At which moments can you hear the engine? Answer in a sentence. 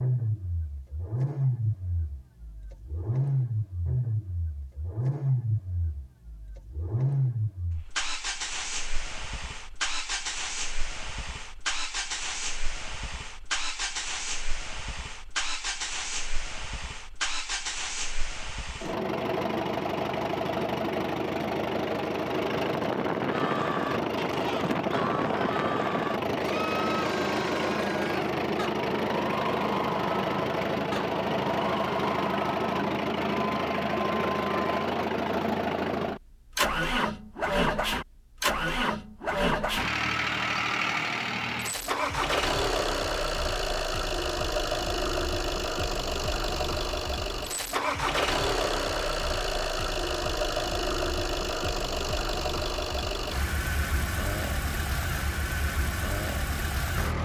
The engine can be heard from 0.0 to 57.1 s.